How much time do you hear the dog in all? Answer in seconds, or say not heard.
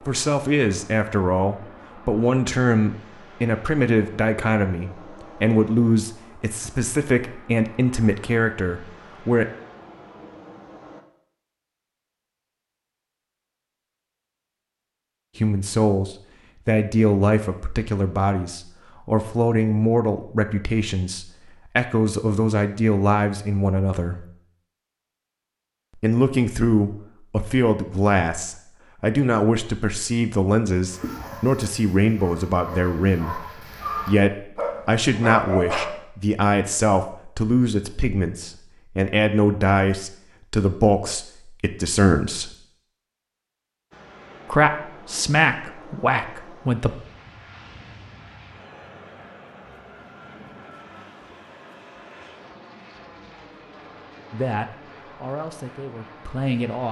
5 s.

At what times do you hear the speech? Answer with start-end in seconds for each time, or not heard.
0.1-9.4, 15.3-24.2, 25.9-42.5, 44.5-46.9, 54.3-56.8.